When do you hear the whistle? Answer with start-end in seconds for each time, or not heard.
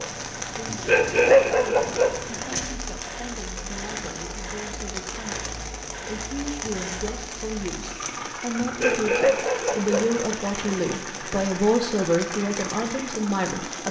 not heard.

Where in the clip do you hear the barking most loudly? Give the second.
1 s.